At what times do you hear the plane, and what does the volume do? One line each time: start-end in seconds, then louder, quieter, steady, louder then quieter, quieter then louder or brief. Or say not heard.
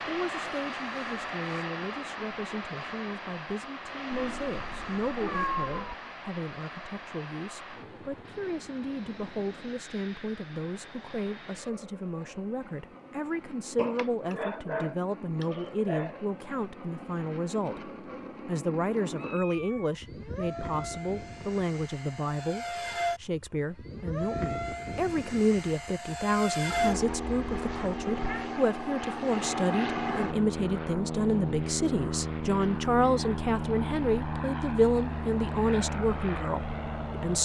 0.0-37.3 quieter then louder.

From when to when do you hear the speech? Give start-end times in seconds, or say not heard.
0.1-37.3.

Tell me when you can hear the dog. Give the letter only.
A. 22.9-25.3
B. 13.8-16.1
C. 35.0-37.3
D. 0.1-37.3
B.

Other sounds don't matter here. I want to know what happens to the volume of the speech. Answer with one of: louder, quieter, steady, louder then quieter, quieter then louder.
louder.